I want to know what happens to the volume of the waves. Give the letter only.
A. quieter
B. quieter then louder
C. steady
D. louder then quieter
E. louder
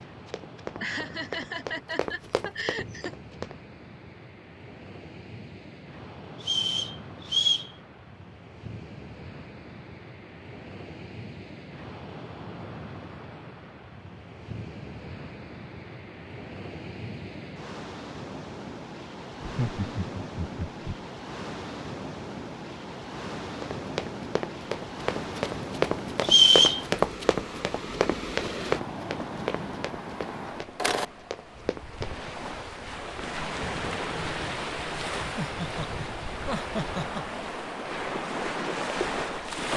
E.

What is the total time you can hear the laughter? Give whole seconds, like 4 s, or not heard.
6 s.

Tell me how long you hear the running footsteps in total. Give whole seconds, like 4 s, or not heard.
12 s.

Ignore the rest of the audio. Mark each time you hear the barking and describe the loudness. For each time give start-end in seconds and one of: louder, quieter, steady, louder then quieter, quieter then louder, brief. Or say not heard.
not heard.